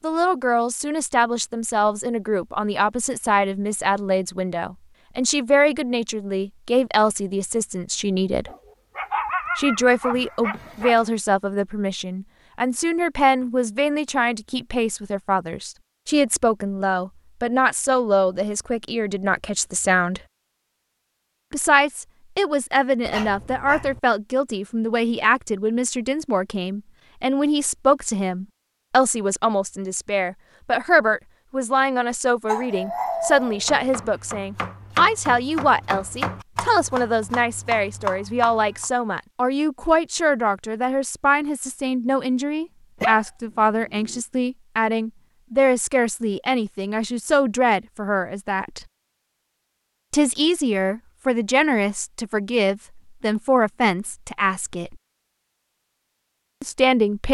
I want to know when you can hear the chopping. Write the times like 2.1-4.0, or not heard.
33.5-38.9.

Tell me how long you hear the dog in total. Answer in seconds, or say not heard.
6 s.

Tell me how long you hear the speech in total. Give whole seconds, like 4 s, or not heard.
52 s.